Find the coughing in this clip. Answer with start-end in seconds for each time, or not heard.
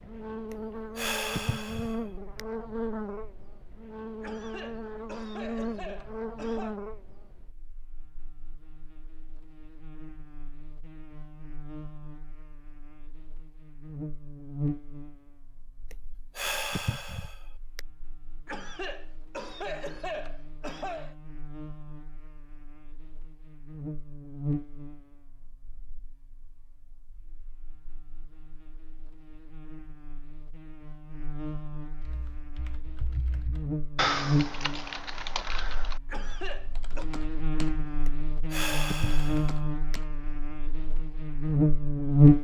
4.2-6.8, 18.4-21.1, 36.0-37.0.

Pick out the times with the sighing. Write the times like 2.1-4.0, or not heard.
0.5-2.4, 15.9-17.8, 38.0-40.0.